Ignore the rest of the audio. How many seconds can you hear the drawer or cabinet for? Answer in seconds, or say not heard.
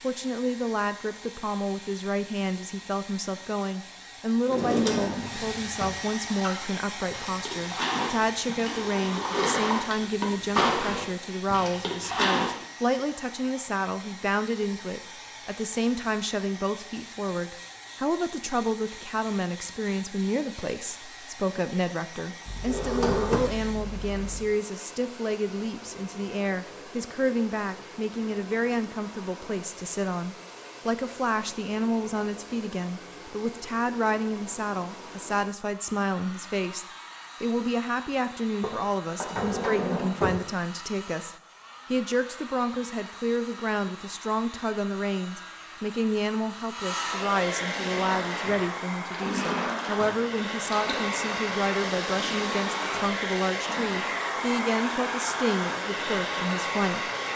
5 s.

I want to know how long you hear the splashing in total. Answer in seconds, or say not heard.
11 s.